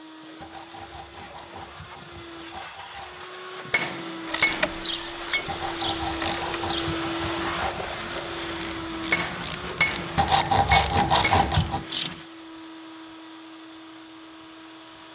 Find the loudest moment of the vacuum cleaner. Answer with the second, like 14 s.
7 s.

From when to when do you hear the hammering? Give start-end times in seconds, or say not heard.
3.7-5.5, 9.1-11.6.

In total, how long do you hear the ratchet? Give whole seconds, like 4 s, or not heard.
8 s.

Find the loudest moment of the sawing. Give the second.
11 s.